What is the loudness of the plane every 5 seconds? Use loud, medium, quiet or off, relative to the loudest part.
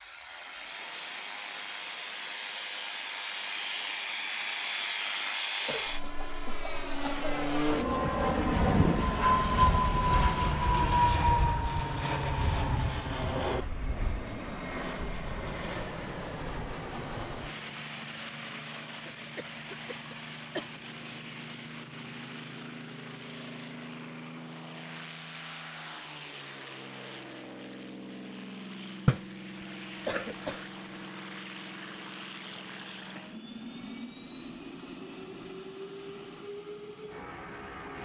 medium, loud, loud, medium, quiet, quiet, quiet, quiet.